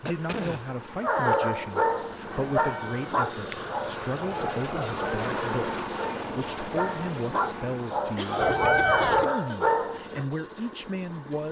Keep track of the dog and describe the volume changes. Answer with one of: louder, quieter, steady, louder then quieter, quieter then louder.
quieter then louder.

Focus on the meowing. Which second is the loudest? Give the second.
9 s.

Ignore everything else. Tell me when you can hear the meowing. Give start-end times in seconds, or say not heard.
2.6-3.6, 8.4-9.3.